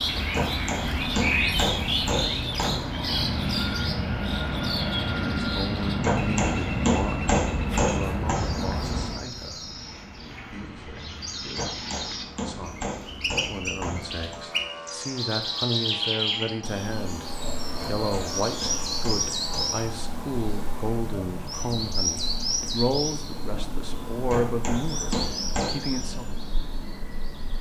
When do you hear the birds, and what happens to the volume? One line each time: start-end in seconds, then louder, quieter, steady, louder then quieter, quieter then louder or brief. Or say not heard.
0.0-27.5 quieter then louder.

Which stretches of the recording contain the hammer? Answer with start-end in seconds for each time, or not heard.
0.3-3.0, 6.0-8.4, 11.6-14.4, 17.8-19.9, 24.2-25.9.